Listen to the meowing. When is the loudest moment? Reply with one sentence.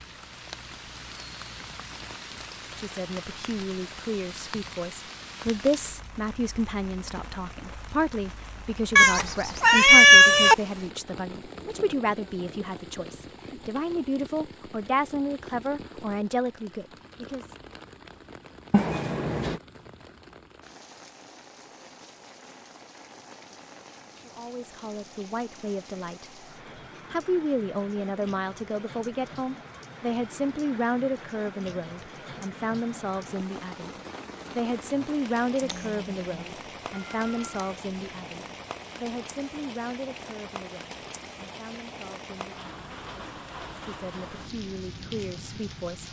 The loudest moment of the meowing is at 10 seconds.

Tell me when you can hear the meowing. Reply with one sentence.
You can hear the meowing from 8.9 to 10.6 s, from 18.7 to 19.6 s and from 35.6 to 37.7 s.